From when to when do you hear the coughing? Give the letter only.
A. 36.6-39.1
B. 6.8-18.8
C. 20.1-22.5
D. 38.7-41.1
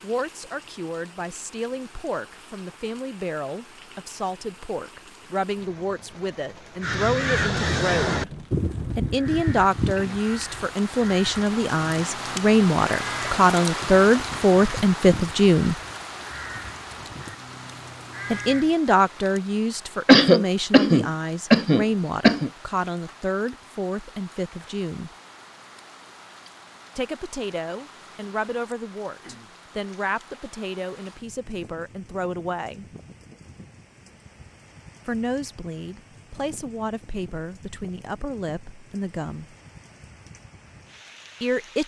C.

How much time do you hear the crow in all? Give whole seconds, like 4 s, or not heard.
12 s.